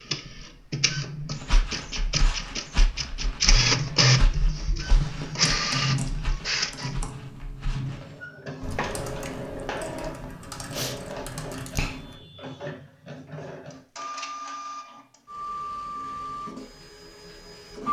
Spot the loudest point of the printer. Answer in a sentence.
The loudest moment of the printer is at 4 seconds.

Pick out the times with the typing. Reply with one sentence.
The typing can be heard from 4.8 to 12.2 s.